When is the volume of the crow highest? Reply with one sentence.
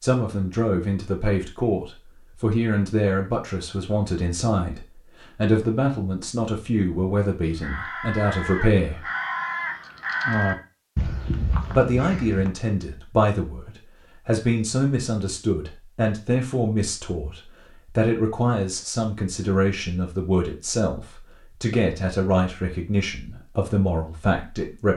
The volume of the crow peaks at 10 seconds.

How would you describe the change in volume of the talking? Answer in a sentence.
The loudness of the talking stays about the same.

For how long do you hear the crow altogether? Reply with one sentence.
You can hear the crow for 5 seconds altogether.